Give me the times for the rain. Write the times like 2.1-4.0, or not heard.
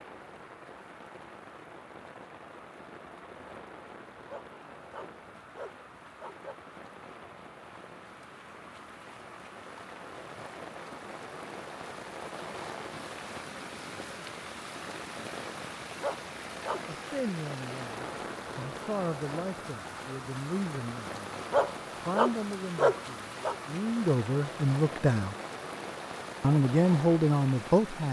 0.0-28.0.